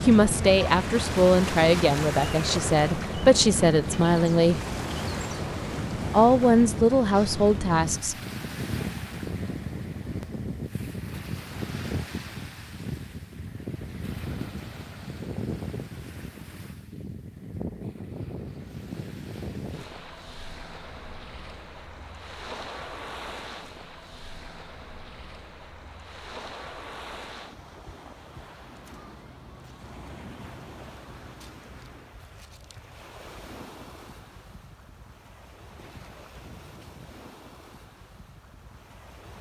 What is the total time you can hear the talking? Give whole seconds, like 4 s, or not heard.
7 s.